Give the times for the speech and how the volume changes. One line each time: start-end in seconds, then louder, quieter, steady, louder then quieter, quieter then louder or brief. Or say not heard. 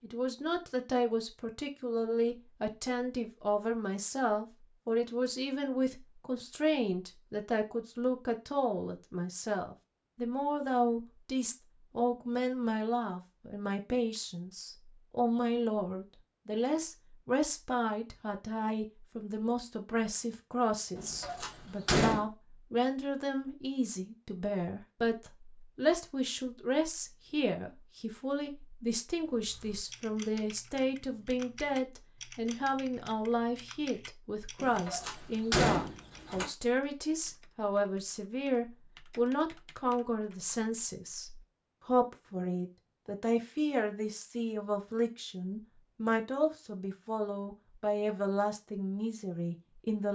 0.0-50.0 steady.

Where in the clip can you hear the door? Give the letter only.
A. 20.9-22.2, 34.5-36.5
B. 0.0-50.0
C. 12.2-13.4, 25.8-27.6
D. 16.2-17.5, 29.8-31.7
A.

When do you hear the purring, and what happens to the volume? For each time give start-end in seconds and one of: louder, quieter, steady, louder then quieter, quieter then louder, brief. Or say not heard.
not heard.